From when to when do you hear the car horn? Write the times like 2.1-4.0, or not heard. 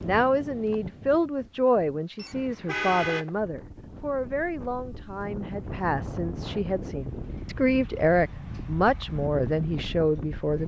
2.1-3.2.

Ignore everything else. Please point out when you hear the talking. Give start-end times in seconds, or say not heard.
0.0-10.6.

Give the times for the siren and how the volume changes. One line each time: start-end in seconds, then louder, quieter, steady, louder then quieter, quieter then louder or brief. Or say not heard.
not heard.